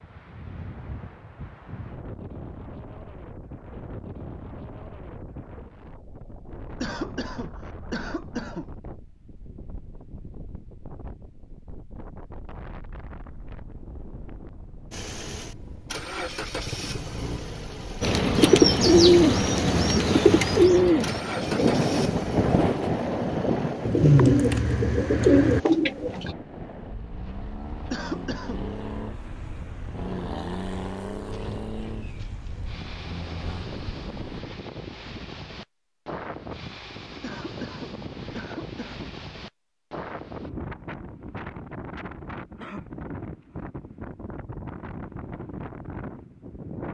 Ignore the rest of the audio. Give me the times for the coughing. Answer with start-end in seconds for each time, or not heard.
6.8-8.7, 27.9-28.6, 37.2-39.1.